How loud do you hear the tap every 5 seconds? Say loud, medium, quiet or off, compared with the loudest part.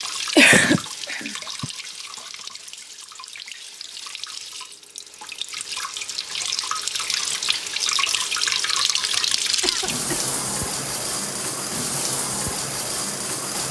medium, loud, loud.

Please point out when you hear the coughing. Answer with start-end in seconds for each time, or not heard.
0.3-1.6, 9.6-10.8.